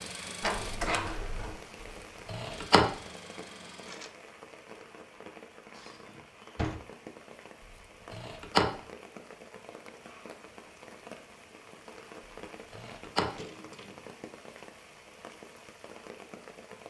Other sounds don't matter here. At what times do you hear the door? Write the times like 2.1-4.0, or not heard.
0.4-1.6, 5.8-6.8, 13.2-14.1.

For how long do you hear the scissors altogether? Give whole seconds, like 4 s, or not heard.
2 s.